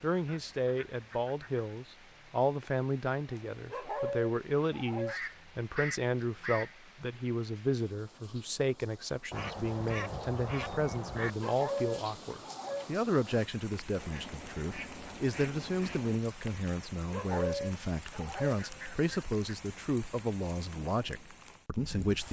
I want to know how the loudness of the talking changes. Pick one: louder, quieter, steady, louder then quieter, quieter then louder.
steady.